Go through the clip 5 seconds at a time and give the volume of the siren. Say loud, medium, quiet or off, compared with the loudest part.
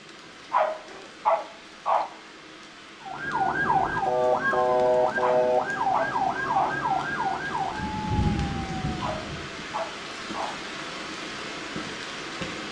loud, loud, off.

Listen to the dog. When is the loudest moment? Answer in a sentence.
The volume of the dog peaks at 1 second.